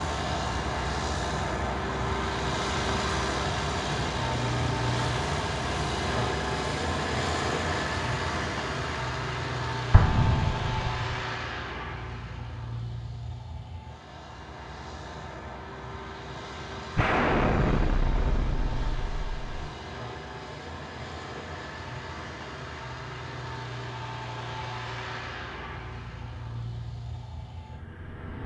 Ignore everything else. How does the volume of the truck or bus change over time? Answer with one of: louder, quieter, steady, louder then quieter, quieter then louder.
quieter.